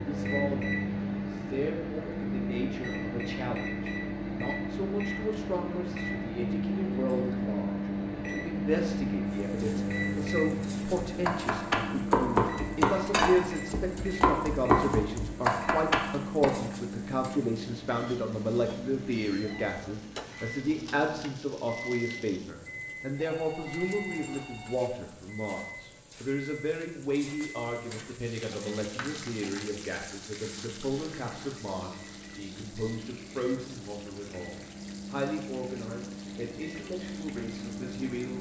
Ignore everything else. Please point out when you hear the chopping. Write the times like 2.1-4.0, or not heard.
10.9-16.6.